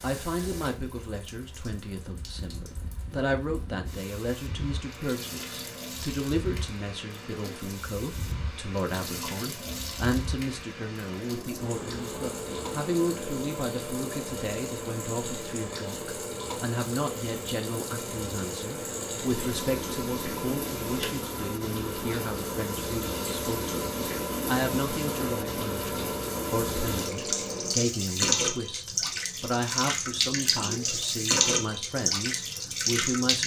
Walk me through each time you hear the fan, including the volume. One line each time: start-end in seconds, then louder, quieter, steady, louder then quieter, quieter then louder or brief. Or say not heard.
0.0-27.8 louder.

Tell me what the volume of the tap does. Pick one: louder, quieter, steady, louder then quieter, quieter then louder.
louder.